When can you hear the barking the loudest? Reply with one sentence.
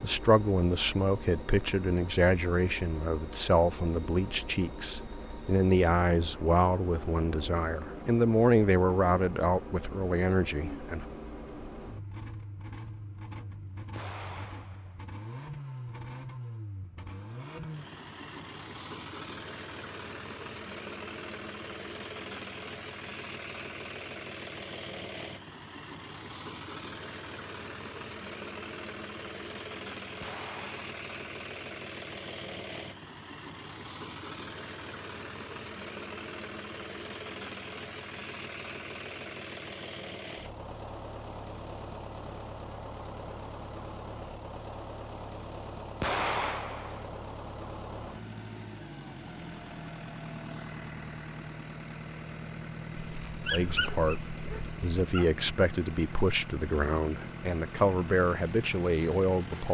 The volume of the barking peaks at 54 seconds.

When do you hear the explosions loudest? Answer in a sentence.
The loudest moment of the explosions is at 46 seconds.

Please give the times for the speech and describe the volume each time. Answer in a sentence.
The speech can be heard from 0.0 to 11.1 s, at a steady volume; and from 53.5 to 59.6 s, at a steady volume.